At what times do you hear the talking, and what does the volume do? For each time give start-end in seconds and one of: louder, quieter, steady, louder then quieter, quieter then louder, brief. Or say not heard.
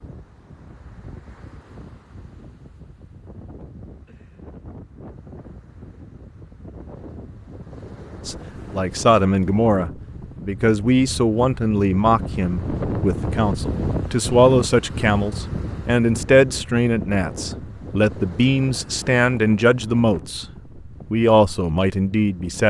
8.2-20.4 steady
21.1-22.6 brief.